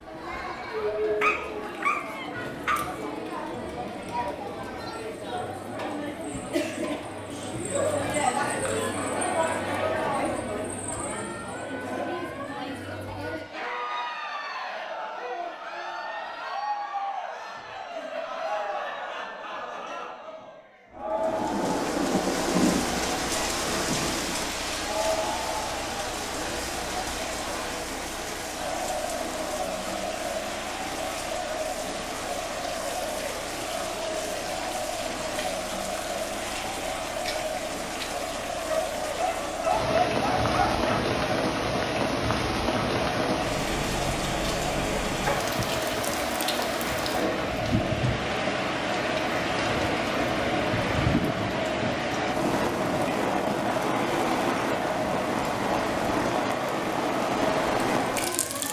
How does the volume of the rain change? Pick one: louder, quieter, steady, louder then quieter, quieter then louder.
quieter then louder.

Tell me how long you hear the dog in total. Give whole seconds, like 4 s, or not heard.
4 s.